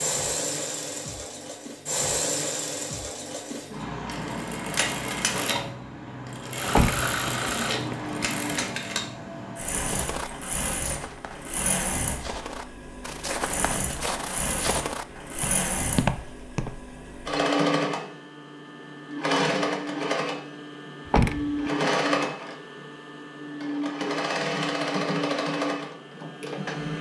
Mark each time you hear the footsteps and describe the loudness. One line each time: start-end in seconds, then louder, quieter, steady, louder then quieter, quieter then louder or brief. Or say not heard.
9.8-16.9 louder.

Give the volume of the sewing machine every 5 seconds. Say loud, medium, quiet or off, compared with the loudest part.
loud, loud, medium, loud, loud, loud.